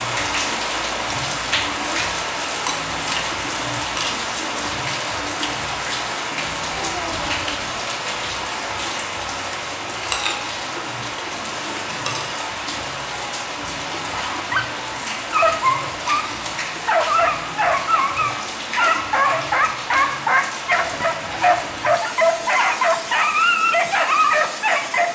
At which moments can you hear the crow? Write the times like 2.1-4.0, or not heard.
not heard.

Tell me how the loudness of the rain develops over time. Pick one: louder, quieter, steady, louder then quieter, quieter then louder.
quieter.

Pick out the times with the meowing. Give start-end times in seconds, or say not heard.
6.7-7.8.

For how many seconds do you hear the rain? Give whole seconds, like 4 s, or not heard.
25 s.